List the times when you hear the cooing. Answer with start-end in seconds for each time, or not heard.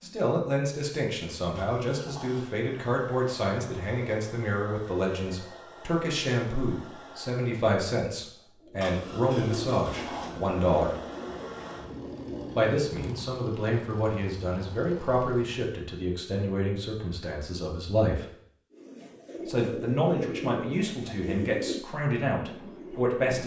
8.6-13.3, 18.7-23.4.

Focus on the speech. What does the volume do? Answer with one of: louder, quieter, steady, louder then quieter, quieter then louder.
steady.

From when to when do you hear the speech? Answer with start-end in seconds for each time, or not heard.
0.0-10.9, 12.6-18.2, 19.4-23.4.